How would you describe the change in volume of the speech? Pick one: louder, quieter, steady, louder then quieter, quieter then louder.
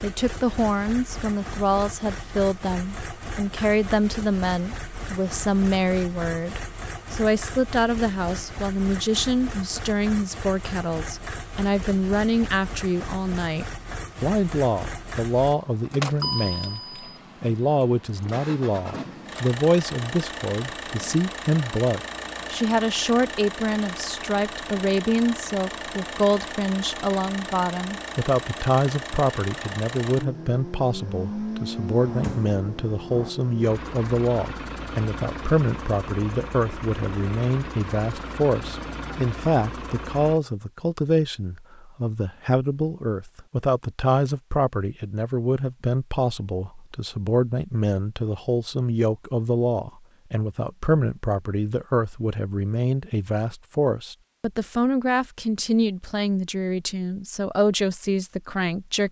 steady.